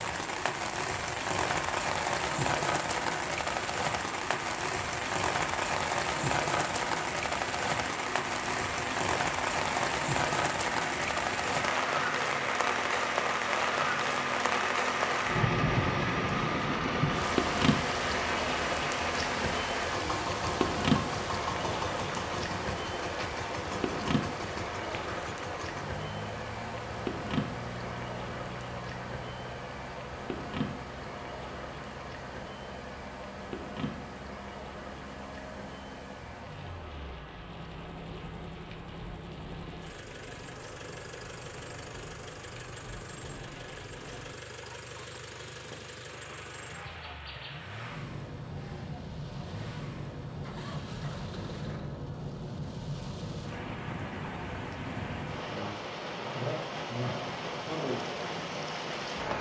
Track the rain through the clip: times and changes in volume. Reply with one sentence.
You can hear the rain from 0.0 to 59.3 s, getting quieter then louder.